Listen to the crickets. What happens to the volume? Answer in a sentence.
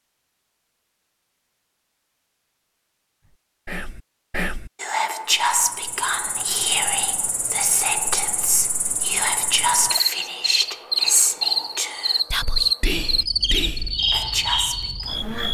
The loudness of the crickets goes up.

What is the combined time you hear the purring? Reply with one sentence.
The purring can't be heard in this clip.